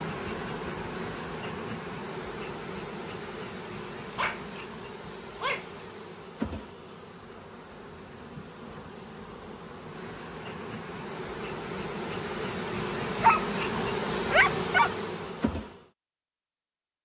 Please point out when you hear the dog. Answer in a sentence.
You can hear the dog from 4.0 to 5.8 s and from 13.2 to 14.9 s.